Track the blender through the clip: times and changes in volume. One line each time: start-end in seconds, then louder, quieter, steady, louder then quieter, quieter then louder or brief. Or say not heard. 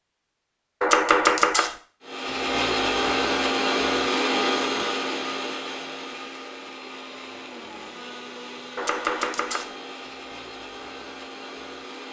2.0-12.0 quieter.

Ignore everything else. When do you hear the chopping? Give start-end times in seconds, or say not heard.
0.8-1.8, 8.8-9.7.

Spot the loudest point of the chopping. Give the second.
1 s.